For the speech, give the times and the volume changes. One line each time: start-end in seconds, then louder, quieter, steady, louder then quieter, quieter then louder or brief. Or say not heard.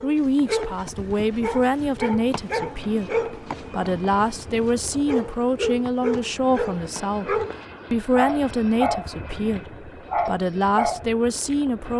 0.0-11.9 steady.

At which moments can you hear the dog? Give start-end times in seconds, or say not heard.
0.0-11.6.